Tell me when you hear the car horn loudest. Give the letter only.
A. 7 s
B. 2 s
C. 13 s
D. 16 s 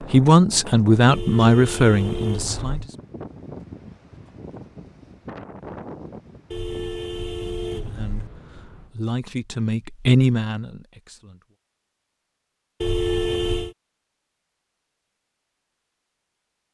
C.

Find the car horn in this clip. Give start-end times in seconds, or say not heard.
1.1-2.9, 6.5-8.3, 12.8-13.8.